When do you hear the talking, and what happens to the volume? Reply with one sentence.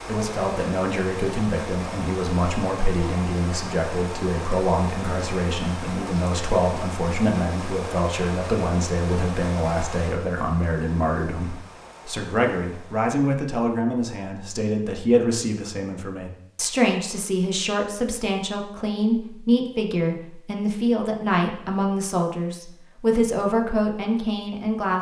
The talking can be heard from 0.1 to 24.9 s, at a steady volume.